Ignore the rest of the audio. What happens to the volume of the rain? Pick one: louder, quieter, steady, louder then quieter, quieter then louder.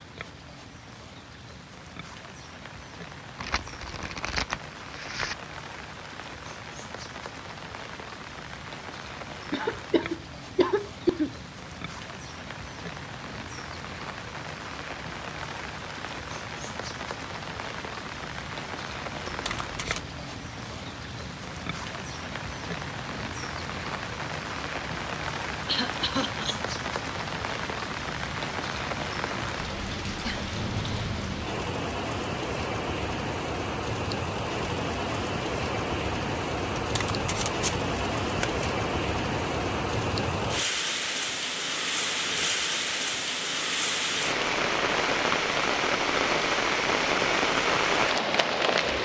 louder.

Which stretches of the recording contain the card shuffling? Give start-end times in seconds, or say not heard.
3.4-5.3, 19.2-20.1, 36.8-38.6.